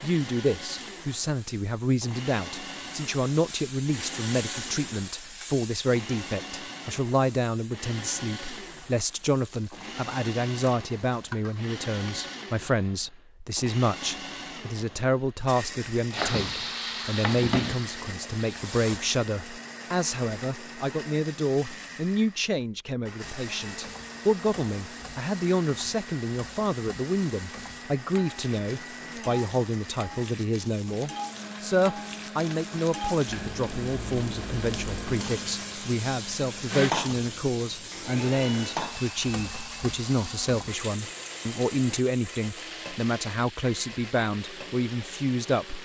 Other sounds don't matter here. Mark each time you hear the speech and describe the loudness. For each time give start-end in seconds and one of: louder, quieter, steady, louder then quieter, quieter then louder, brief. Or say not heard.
0.0-45.8 steady.